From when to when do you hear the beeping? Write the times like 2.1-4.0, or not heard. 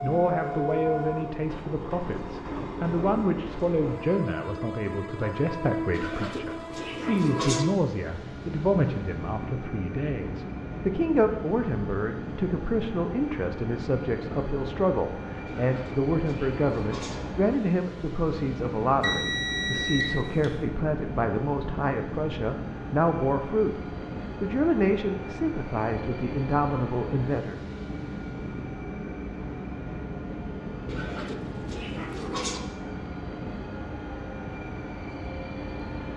19.0-20.4.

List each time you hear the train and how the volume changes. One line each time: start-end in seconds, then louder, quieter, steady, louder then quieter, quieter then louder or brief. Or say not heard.
0.0-36.1 steady.